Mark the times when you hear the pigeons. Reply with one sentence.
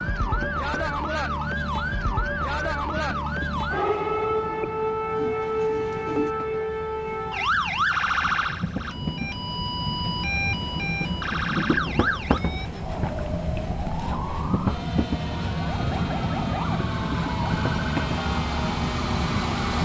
The pigeons can be heard from 5.2 to 6.3 s.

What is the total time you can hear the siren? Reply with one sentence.
The siren can be heard for 20 seconds in total.